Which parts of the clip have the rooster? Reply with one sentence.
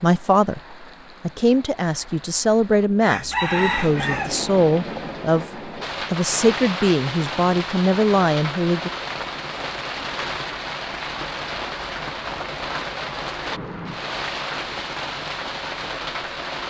You can hear the rooster from 3.0 to 4.4 s.